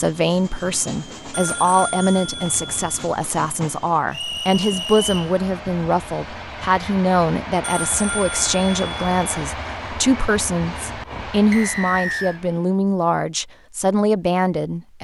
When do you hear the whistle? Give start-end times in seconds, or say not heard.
4.1-5.3, 11.5-12.4.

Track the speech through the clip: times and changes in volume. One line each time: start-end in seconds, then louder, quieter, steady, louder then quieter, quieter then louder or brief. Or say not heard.
0.0-14.9 steady.